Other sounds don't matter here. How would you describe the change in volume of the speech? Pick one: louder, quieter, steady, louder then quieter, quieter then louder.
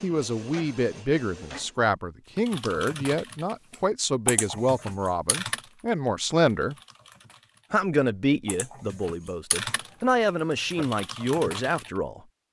steady.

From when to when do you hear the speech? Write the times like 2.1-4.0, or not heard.
0.0-6.8, 7.7-12.2.